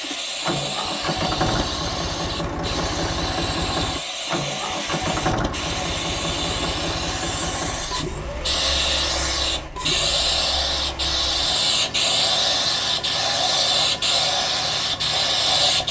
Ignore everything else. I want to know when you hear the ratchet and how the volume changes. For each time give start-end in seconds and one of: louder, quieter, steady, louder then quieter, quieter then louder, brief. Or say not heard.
not heard.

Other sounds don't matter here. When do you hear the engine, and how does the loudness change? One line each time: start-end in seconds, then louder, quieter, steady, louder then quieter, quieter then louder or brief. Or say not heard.
0.0-15.8 quieter.